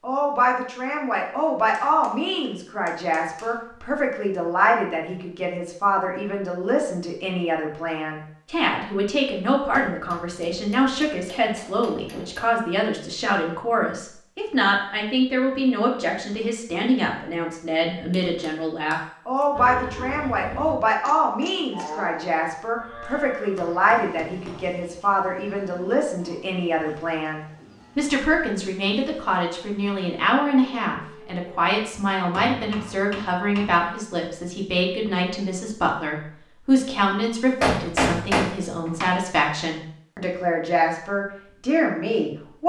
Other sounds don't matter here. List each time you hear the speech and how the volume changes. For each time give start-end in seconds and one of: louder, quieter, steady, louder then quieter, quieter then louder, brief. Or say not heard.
0.0-42.6 steady.